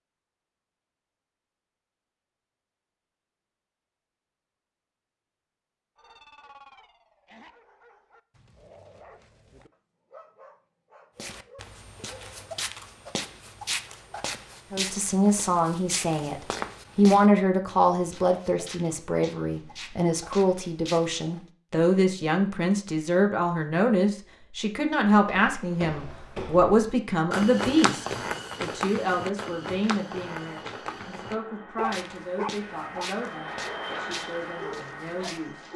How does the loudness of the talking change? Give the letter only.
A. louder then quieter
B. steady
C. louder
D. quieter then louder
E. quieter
E.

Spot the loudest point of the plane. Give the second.
34 s.